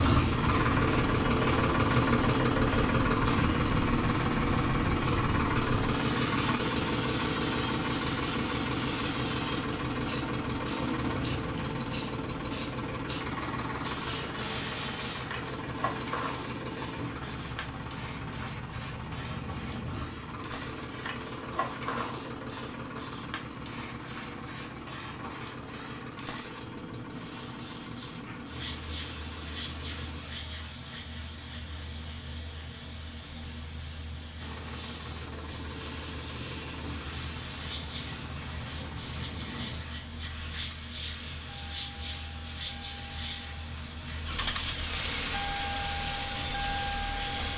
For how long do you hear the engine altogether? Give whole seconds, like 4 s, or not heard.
43 s.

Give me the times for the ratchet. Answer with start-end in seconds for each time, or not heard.
not heard.